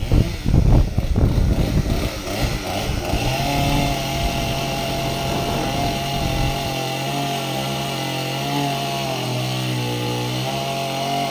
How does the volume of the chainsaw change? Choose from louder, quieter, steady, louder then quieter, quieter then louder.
louder.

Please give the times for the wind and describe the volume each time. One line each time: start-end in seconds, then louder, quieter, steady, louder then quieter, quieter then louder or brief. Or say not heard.
0.0-6.6 quieter.